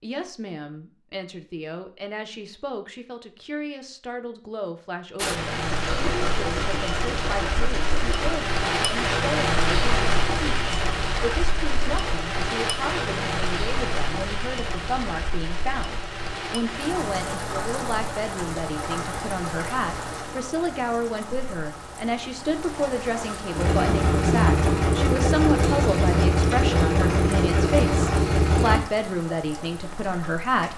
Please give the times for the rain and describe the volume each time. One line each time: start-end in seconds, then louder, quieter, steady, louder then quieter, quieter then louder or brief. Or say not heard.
5.2-30.7 quieter.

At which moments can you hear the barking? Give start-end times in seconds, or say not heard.
not heard.